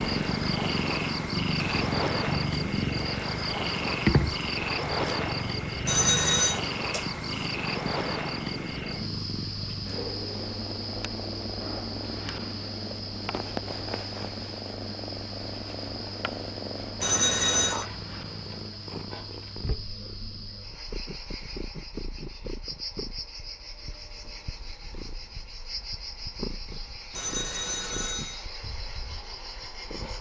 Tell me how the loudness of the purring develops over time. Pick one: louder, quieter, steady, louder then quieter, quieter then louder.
quieter.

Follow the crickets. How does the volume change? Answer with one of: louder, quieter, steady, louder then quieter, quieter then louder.
quieter.